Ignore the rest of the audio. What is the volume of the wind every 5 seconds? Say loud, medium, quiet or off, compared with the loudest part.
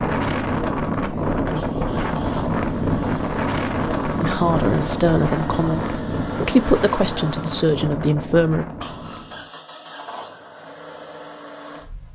loud, medium, off.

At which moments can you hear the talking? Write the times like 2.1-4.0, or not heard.
4.2-8.7.